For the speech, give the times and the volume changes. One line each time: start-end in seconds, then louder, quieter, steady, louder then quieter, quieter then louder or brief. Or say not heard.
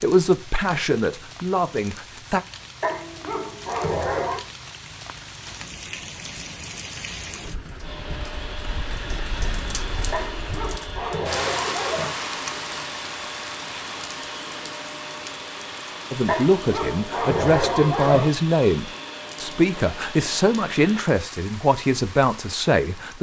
0.0-2.4 brief
16.1-23.1 steady.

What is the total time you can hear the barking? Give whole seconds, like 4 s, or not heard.
6 s.